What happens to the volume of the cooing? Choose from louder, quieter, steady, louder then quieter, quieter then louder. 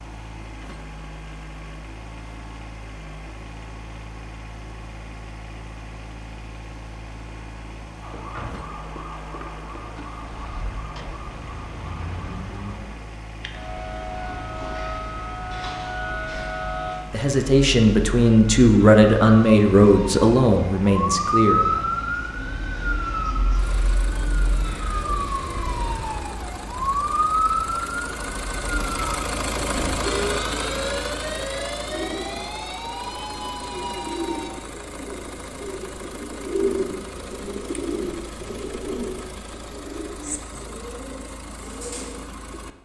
louder then quieter.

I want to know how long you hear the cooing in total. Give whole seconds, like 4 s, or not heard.
11 s.